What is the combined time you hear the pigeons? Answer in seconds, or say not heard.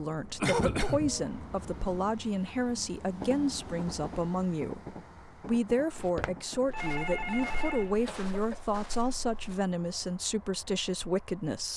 not heard.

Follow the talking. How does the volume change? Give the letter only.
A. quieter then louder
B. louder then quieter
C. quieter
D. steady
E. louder
D.